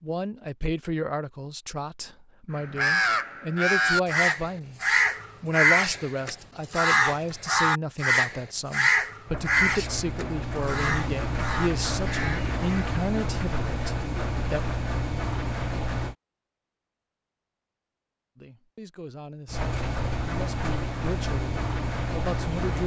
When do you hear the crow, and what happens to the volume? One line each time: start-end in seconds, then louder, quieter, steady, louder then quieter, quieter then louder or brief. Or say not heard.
2.5-12.8 quieter.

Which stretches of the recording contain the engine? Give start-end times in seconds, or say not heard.
9.2-16.1, 19.4-22.8.